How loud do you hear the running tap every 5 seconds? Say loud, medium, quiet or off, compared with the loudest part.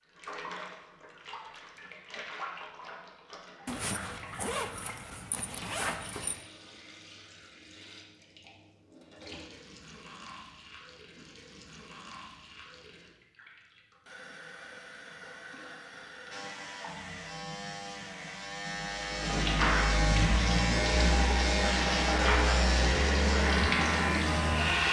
quiet, quiet, quiet, medium, loud.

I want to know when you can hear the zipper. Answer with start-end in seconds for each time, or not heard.
3.6-6.5.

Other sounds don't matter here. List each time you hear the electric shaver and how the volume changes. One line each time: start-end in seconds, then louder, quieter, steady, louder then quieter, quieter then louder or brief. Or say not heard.
16.3-24.8 louder.